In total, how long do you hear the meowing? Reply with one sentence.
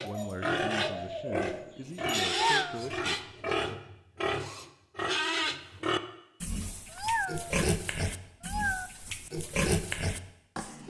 The meowing can be heard for 2 seconds in total.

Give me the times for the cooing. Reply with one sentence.
You can hear the cooing from 0.0 to 2.4 s.